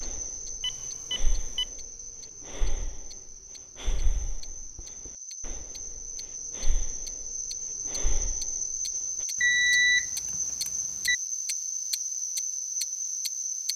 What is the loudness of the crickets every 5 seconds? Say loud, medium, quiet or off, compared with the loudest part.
medium, loud, loud.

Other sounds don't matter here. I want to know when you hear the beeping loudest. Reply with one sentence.
The volume of the beeping peaks at 10 seconds.